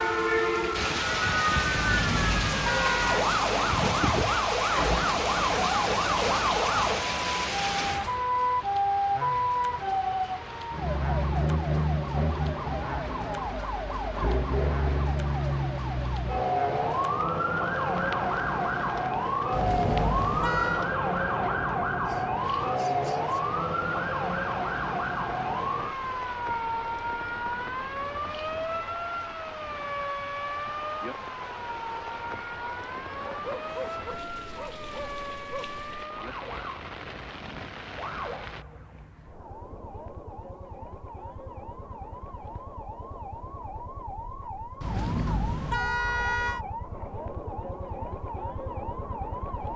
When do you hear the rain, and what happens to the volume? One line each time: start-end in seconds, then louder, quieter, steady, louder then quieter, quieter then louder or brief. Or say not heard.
0.0-38.6 quieter.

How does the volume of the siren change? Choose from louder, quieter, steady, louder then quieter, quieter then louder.
quieter.